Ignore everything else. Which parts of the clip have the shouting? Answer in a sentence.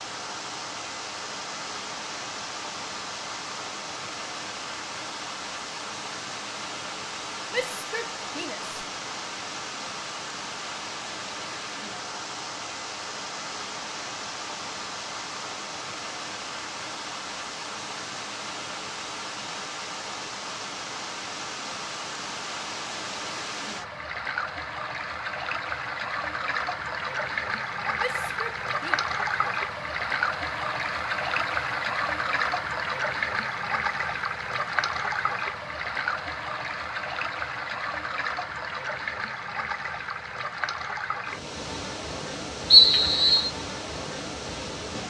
The shouting can be heard from 7.5 to 8.7 s and from 27.9 to 29.0 s.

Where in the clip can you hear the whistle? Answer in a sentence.
You can hear the whistle from 42.7 to 43.5 s.